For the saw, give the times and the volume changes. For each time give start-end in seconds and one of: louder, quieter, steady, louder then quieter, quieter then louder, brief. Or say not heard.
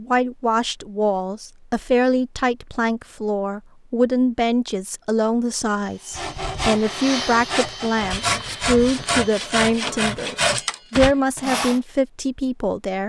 6.1-11.8 louder.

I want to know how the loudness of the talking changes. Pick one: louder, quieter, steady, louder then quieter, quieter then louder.
steady.